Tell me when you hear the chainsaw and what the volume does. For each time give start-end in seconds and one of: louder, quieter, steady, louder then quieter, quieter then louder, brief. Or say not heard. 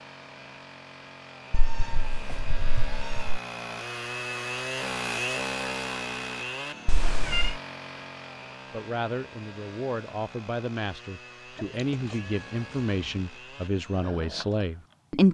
0.0-15.2 louder then quieter.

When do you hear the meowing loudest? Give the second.
7 s.